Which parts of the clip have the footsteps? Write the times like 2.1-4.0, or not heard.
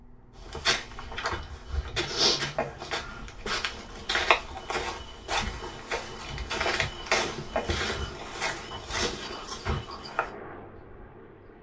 0.4-10.3.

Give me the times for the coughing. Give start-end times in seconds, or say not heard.
2.5-3.2, 7.5-8.2.